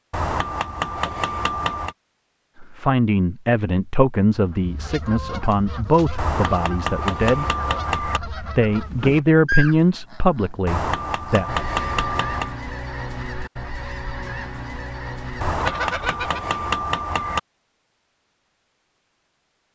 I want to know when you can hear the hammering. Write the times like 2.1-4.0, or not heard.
0.1-1.9, 6.2-8.2, 10.7-12.6, 15.4-17.4.